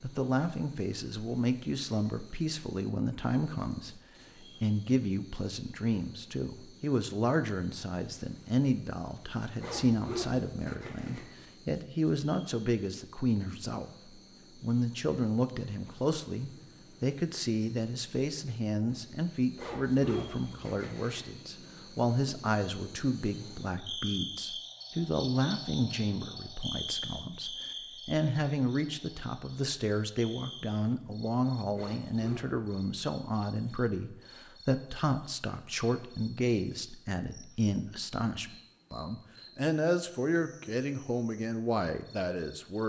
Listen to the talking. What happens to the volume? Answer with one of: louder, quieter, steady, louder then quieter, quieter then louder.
steady.